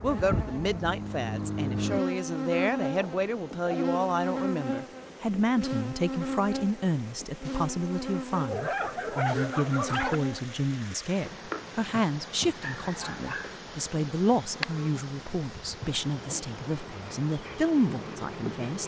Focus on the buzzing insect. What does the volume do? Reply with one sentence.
The loudness of the buzzing insect goes down.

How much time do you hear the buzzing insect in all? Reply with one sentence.
The buzzing insect can be heard for 19 seconds in total.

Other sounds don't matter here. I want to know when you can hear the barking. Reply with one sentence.
You can hear the barking from 3.0 to 4.0 s, from 8.3 to 10.2 s and from 12.6 to 13.6 s.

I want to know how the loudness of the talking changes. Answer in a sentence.
The volume of the talking stays about the same.